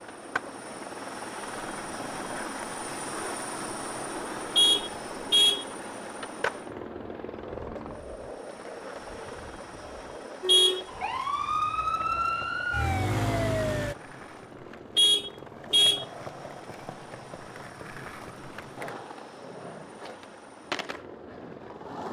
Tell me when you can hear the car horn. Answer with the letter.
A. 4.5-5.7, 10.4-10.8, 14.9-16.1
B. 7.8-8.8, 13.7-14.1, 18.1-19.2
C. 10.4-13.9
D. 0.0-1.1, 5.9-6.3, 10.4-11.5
A.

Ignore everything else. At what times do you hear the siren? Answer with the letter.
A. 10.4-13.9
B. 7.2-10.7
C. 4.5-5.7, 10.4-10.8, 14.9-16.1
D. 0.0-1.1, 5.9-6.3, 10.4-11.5
A.